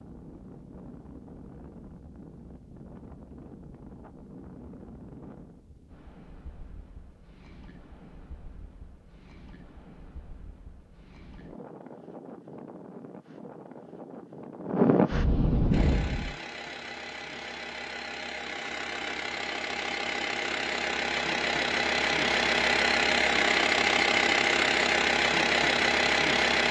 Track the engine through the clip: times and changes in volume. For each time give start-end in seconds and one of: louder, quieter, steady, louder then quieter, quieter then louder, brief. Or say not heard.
15.7-26.6 louder.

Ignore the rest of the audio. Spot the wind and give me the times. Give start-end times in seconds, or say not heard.
0.0-16.4.